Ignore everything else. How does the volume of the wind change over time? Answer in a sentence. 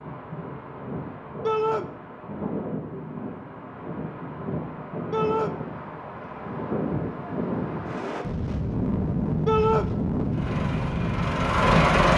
The loudness of the wind goes up.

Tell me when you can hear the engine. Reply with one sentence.
You can hear the engine from 10.3 to 12.1 s.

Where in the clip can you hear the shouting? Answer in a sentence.
You can hear the shouting from 1.4 to 1.9 s, from 5.1 to 5.5 s and from 9.4 to 9.8 s.